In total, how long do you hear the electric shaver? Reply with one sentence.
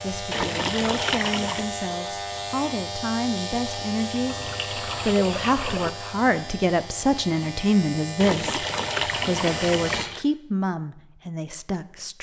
You can hear the electric shaver for 10 seconds altogether.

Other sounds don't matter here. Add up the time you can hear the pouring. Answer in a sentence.
The pouring can be heard for 5 seconds in total.